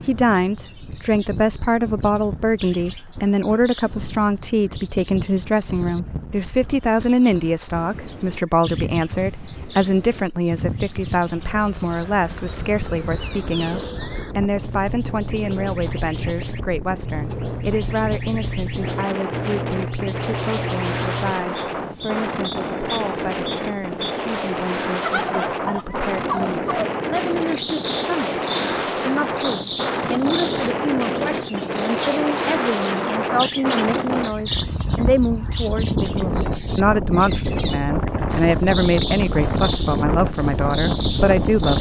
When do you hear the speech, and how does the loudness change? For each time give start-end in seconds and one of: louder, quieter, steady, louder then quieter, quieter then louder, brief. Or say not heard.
0.1-41.7 quieter then louder.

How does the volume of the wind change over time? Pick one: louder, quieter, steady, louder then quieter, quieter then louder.
louder.